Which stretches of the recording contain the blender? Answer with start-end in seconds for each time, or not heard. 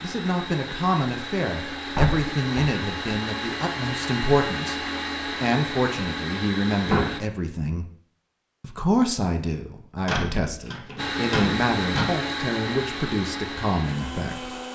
0.0-7.2, 10.9-14.6.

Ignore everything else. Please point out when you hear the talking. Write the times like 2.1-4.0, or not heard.
0.0-7.9, 8.6-14.6.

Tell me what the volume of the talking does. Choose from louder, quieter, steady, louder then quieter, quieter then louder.
steady.